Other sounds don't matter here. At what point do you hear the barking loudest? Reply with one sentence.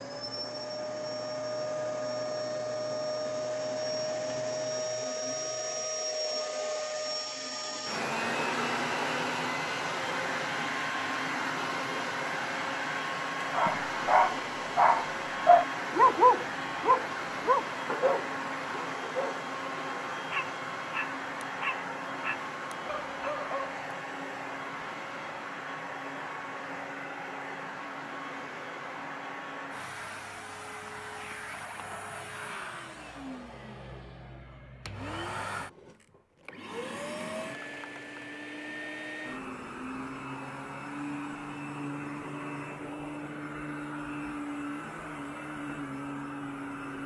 The volume of the barking peaks at 16 seconds.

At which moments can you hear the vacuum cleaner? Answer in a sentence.
You can hear the vacuum cleaner from 0.0 to 47.0 s.